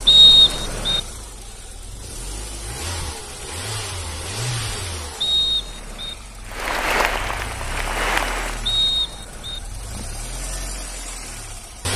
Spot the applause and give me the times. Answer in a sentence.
You can hear the applause from 6.5 to 8.6 s.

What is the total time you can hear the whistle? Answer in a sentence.
You can hear the whistle for 3 seconds altogether.